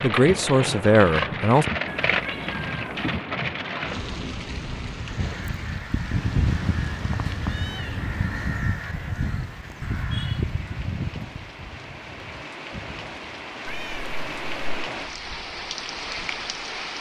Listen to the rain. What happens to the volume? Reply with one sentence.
The volume of the rain goes down, then up.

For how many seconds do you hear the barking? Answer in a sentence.
The barking can't be heard in this clip.